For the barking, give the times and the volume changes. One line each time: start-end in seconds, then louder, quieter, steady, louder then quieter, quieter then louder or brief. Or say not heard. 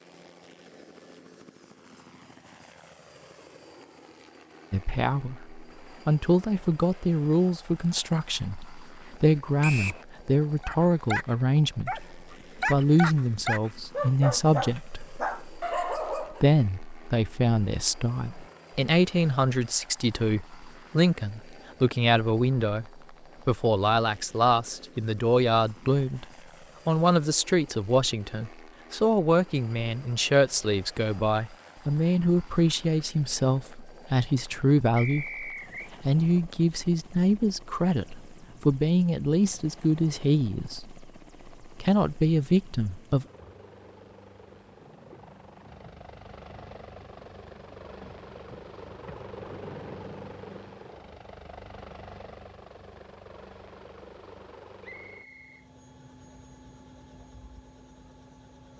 10.6-16.4 steady.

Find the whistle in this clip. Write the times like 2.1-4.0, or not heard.
9.6-10.1, 35.0-35.9, 54.8-55.6.